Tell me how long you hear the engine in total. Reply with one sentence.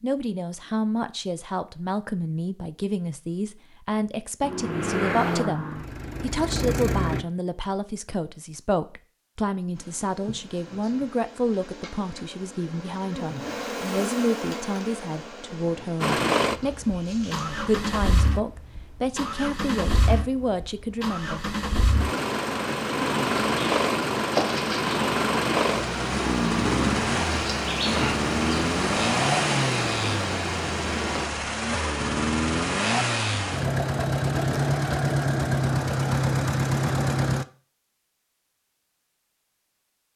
The engine can be heard for 24 seconds in total.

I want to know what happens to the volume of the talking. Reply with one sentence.
The loudness of the talking stays about the same.